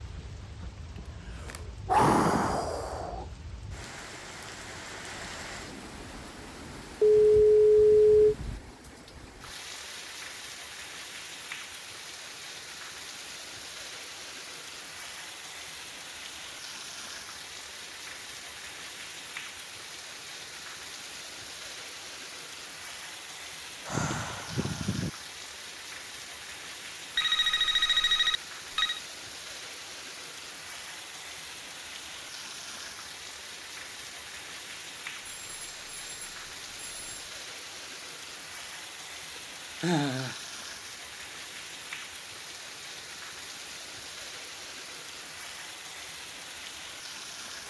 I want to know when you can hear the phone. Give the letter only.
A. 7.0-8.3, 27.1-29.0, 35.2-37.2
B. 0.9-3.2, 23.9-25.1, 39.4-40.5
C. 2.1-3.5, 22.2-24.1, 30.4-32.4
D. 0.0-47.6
A.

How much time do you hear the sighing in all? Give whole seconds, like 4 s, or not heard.
5 s.